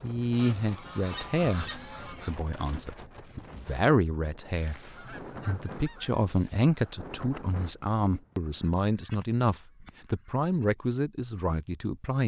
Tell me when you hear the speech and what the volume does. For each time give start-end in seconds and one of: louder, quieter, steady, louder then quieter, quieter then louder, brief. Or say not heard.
0.0-12.2 steady.